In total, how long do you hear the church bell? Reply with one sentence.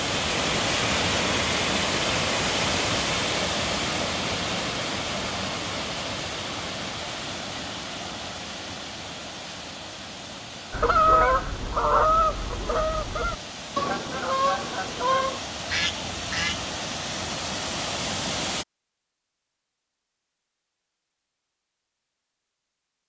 The church bell can't be heard in this clip.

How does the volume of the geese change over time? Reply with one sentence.
The volume of the geese goes down.